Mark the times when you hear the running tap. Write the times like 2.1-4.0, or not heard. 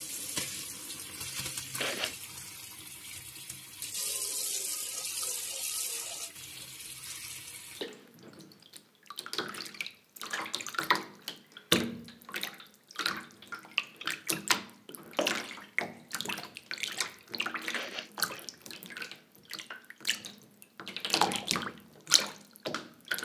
0.0-23.2.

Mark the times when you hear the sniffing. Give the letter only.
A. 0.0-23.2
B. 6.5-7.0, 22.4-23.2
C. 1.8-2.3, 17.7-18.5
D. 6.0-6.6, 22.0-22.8
C.